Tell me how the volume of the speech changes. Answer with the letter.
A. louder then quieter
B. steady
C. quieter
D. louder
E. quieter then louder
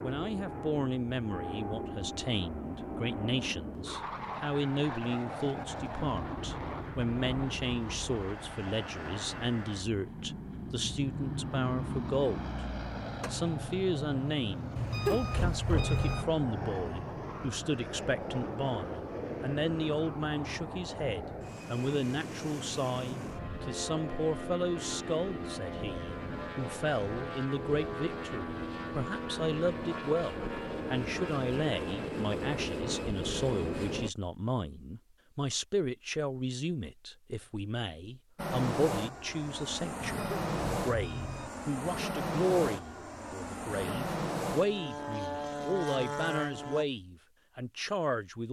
B.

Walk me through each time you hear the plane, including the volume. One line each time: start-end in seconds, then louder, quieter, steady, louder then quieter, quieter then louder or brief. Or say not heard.
0.0-34.1 steady
38.4-46.9 steady.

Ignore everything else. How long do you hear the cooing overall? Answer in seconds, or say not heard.
not heard.